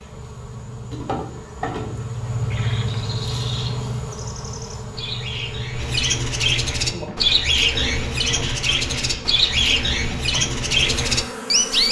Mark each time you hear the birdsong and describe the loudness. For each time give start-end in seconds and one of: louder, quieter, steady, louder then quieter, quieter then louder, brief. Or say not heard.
2.2-11.8 louder.